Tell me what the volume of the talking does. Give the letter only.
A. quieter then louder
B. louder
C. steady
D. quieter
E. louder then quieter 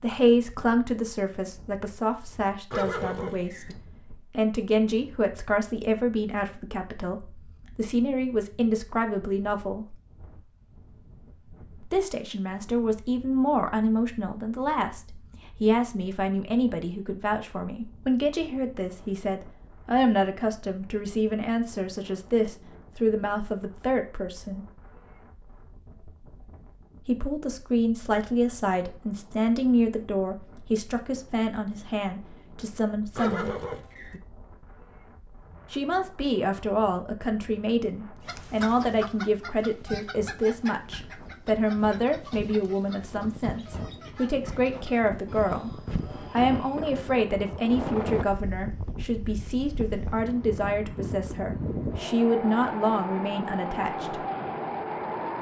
C.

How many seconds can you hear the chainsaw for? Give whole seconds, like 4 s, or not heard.
not heard.